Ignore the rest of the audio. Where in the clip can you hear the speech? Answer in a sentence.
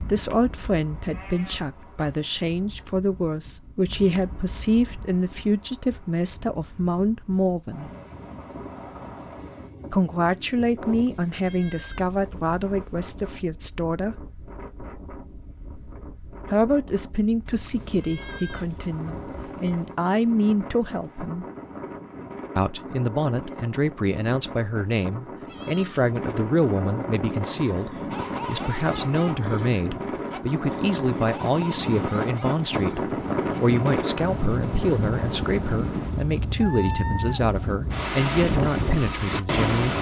You can hear the speech from 0.0 to 7.9 s, from 9.9 to 14.3 s, from 16.5 to 21.4 s and from 22.6 to 39.9 s.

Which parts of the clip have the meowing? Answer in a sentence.
The meowing can't be heard in this clip.